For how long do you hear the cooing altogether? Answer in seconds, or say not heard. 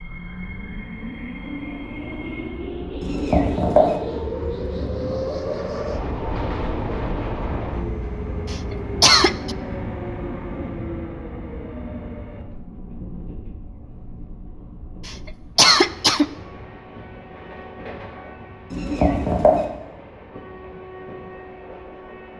2 s.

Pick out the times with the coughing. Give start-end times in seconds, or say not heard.
8.5-9.6, 15.1-16.2.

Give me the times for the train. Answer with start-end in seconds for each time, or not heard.
0.0-22.3.